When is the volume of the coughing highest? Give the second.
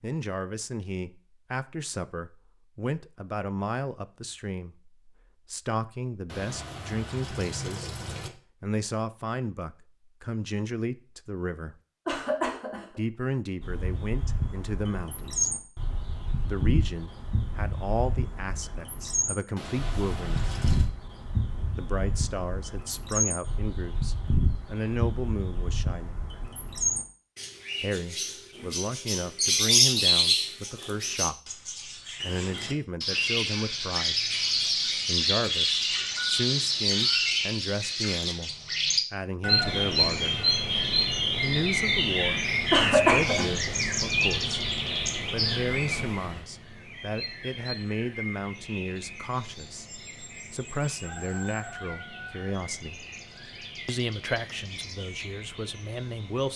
43 s.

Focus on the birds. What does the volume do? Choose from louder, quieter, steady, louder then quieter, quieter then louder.
louder then quieter.